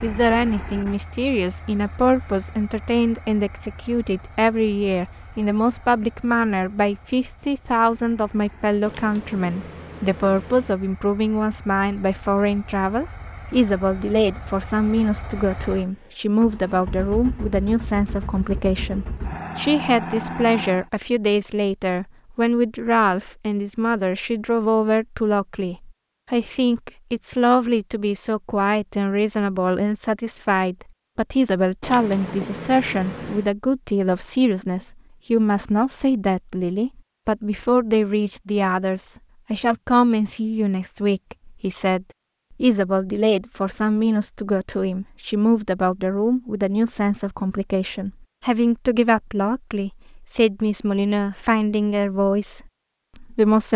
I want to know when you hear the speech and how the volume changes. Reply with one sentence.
The speech can be heard from 0.0 to 53.7 s, at a steady volume.